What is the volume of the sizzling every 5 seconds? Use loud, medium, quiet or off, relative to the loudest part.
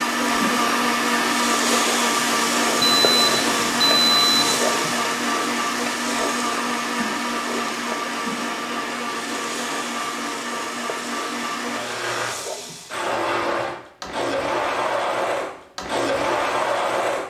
loud, medium, medium, off.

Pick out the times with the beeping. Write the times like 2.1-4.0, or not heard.
2.8-4.6.